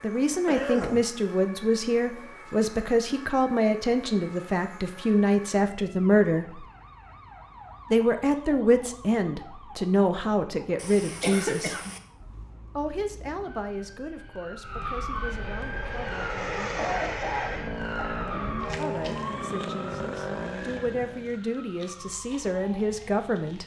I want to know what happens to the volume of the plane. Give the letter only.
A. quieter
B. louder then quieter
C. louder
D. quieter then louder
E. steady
E.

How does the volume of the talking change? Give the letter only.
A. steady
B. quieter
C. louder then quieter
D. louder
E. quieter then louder
E.